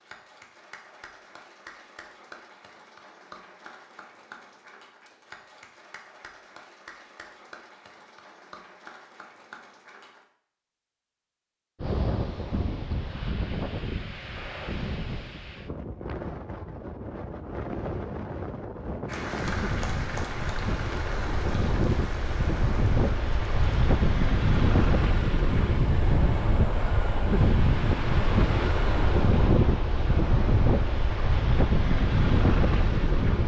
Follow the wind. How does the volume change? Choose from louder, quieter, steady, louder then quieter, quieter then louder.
louder.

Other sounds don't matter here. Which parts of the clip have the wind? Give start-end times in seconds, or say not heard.
11.8-33.4.